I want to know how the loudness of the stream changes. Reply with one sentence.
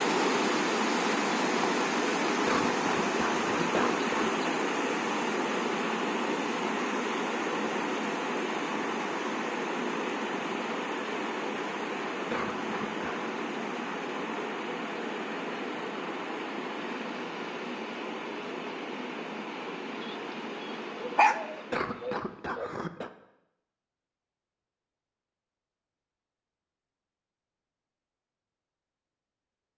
The volume of the stream goes down.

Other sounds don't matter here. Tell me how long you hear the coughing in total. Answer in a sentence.
The coughing can be heard for 4 seconds in total.